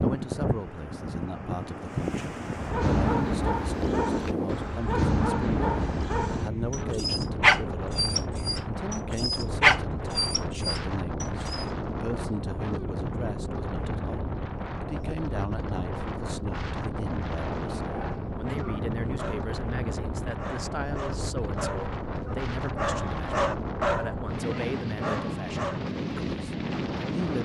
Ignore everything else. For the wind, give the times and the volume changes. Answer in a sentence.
The wind can be heard from 0.0 to 27.4 s, at a steady volume.